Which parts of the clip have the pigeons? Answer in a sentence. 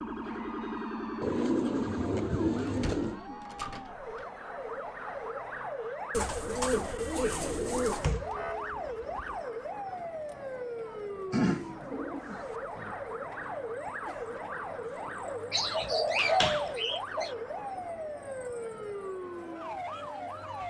You can hear the pigeons from 1.2 to 3.2 s, from 6.1 to 8.1 s, from 11.3 to 12.9 s and from 15.5 to 17.4 s.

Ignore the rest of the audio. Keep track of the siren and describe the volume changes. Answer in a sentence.
The volume of the siren stays about the same.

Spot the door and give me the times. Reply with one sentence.
You can hear the door from 2.6 to 4.2 s, from 8.0 to 9.4 s and from 15.8 to 16.7 s.